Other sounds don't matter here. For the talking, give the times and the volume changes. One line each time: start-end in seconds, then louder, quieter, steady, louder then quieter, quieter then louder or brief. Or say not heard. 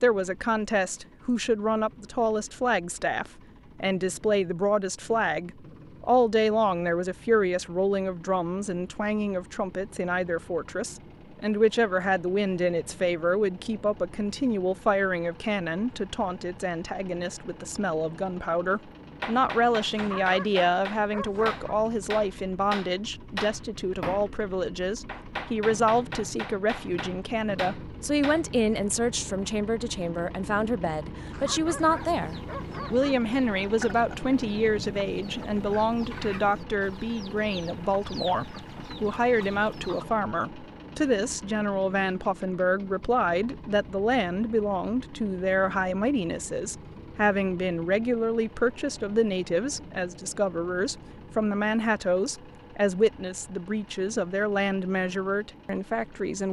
0.0-56.4 steady.